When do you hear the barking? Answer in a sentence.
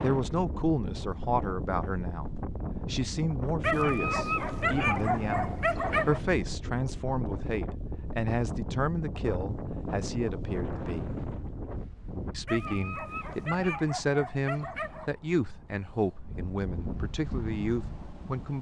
You can hear the barking from 3.6 to 6.2 s and from 12.4 to 15.1 s.